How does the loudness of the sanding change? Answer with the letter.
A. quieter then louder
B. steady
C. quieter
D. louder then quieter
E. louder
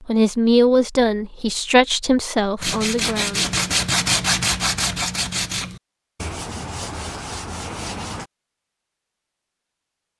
C.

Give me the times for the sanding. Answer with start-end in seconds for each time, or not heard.
2.6-8.3.